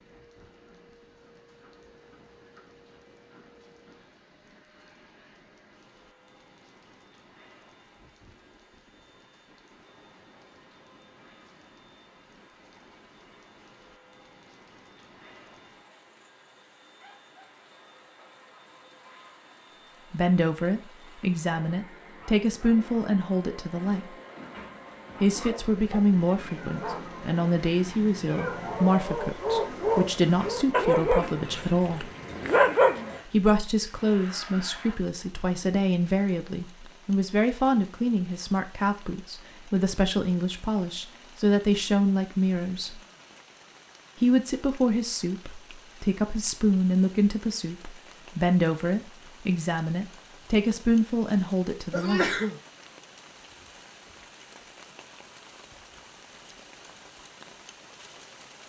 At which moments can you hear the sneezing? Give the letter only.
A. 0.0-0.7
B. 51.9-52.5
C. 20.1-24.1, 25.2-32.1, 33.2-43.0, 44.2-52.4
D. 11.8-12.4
B.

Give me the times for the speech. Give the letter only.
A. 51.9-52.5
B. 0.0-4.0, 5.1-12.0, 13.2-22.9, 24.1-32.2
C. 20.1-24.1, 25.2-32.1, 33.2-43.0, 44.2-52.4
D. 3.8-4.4
C.